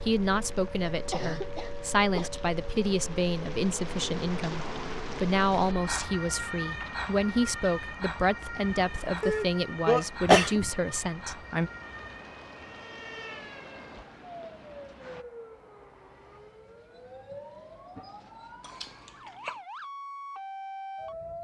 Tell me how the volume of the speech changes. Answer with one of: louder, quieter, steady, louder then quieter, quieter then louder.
steady.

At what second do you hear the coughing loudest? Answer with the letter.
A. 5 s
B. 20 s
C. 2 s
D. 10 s
D.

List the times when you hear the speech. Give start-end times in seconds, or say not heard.
0.0-11.7.